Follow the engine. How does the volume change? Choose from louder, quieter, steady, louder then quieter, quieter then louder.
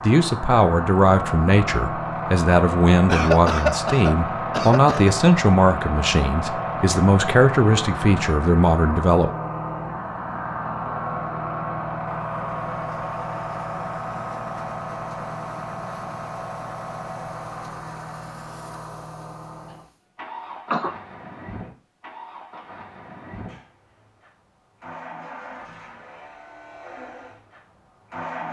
quieter.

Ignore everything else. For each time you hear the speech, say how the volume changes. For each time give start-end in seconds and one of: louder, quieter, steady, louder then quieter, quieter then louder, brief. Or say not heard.
0.0-9.3 steady.